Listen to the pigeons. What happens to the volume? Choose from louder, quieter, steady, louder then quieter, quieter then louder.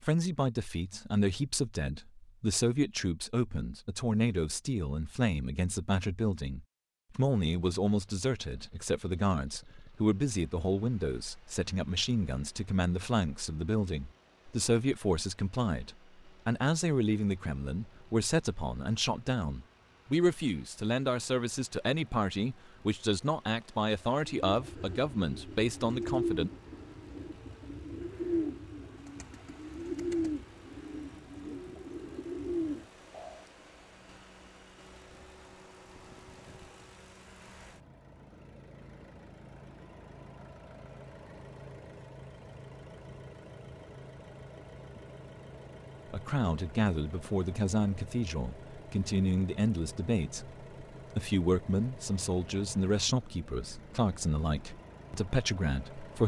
quieter then louder.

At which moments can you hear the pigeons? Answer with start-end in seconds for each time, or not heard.
24.4-33.5.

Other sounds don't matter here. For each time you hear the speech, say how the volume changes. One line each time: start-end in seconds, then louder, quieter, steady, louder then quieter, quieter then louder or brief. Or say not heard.
0.0-26.5 steady
46.1-56.2 steady.